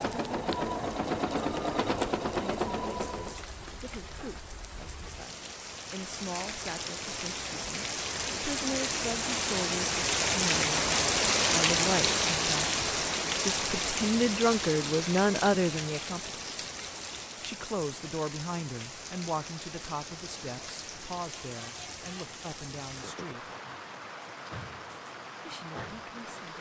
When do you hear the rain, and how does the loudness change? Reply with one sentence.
The rain can be heard from 0.0 to 26.5 s, getting louder then quieter.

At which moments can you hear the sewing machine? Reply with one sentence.
The sewing machine can be heard from 0.0 to 3.5 s.